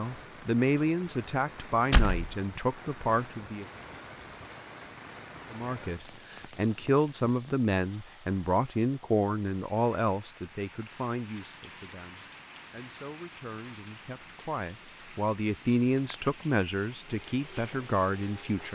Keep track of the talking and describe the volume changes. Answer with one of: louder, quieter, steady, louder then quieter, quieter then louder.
quieter then louder.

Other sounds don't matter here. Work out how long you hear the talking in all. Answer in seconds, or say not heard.
17 s.